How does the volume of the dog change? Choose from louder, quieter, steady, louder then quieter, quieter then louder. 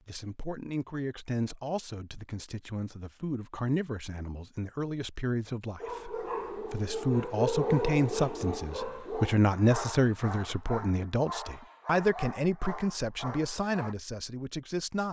quieter.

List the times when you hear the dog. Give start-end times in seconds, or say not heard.
5.8-13.9.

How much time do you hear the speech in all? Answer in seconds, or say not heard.
15 s.